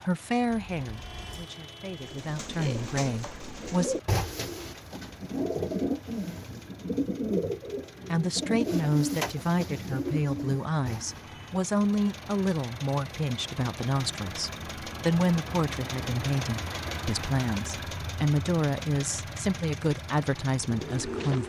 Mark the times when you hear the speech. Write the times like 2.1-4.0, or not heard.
0.0-4.0, 8.1-21.4.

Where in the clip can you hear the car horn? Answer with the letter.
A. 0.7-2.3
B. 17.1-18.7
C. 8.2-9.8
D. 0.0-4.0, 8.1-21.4
A.